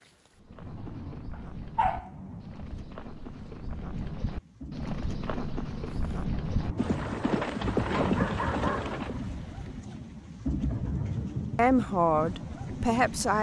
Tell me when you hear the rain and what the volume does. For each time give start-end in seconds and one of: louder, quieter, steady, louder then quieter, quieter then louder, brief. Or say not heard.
0.0-13.3 louder.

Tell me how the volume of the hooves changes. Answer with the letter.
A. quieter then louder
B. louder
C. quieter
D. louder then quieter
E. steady
B.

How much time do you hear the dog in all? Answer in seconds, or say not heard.
3 s.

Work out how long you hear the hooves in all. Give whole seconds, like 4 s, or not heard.
9 s.